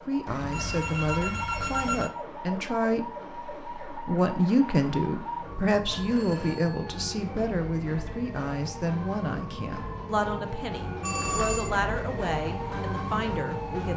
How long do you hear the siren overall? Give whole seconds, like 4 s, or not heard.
14 s.